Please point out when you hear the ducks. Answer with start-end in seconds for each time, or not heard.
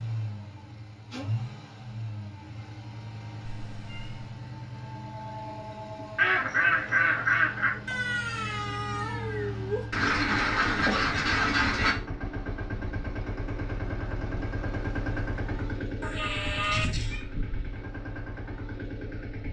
6.2-8.0, 9.9-11.9.